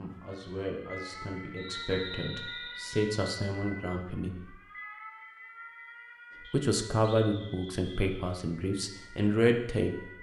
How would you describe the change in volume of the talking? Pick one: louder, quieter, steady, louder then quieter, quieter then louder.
louder.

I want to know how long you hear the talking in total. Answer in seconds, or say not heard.
8 s.